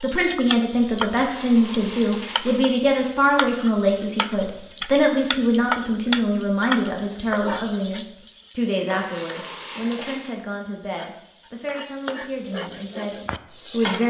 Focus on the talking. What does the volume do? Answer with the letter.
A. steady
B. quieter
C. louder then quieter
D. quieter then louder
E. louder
B.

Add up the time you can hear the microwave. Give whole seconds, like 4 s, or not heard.
not heard.